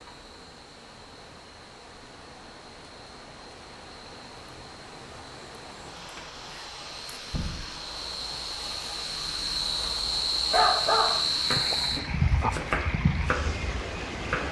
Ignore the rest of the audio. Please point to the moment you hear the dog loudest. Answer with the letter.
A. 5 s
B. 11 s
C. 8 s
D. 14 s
B.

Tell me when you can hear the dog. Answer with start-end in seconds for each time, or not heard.
10.5-12.5.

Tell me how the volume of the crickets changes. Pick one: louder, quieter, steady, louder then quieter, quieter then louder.
louder.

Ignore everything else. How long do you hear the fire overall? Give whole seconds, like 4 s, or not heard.
not heard.